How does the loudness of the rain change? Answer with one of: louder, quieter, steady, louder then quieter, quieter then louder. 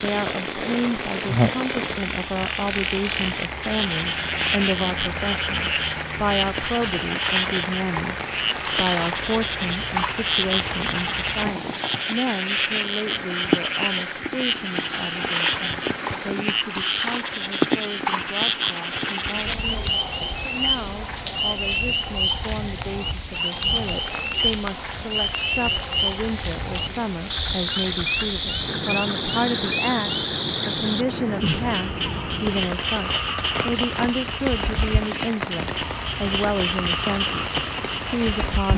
steady.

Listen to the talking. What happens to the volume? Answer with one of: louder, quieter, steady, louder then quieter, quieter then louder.
quieter then louder.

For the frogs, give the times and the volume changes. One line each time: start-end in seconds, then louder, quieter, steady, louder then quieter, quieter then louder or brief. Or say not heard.
0.0-38.7 steady.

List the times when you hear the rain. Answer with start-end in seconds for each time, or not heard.
0.0-38.7.